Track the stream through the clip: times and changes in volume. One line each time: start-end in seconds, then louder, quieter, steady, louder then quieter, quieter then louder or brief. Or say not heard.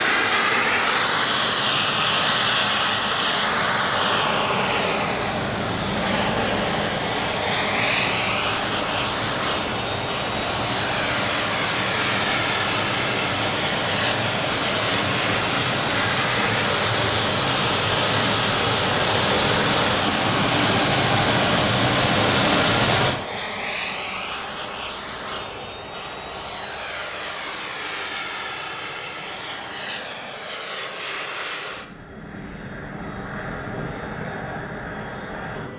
0.0-23.1 louder.